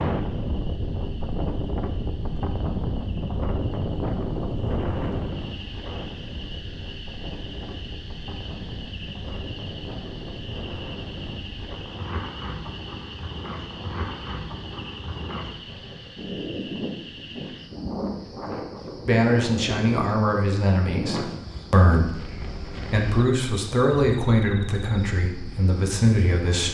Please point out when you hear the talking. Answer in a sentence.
The talking can be heard from 19.1 to 26.6 s.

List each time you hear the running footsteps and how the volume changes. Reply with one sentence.
The running footsteps can't be heard in this clip.